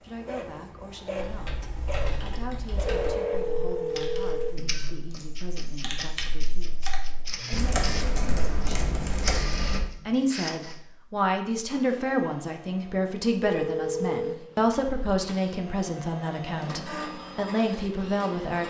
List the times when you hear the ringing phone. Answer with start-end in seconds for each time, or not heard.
2.9-4.7, 13.4-14.4.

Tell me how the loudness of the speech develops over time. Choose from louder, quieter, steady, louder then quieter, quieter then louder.
louder.